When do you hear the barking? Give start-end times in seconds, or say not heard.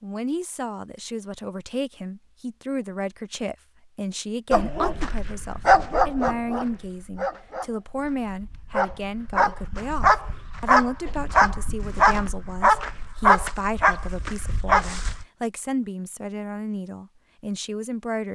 4.5-15.2.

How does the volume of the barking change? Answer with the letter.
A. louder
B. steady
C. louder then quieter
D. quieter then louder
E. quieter
D.